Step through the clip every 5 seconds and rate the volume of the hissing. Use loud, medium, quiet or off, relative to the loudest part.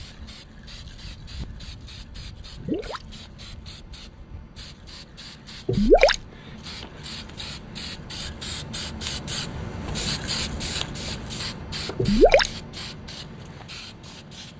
medium, loud, loud.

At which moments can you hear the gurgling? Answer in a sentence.
The gurgling can be heard from 2.5 to 3.1 s, from 5.7 to 6.2 s and from 11.9 to 12.5 s.